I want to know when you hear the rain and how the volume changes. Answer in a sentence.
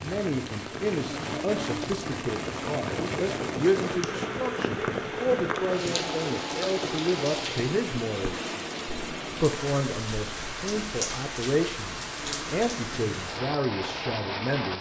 You can hear the rain from 0.0 to 14.7 s, at a steady volume.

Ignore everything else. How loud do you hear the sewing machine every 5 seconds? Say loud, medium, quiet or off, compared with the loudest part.
loud, loud, off.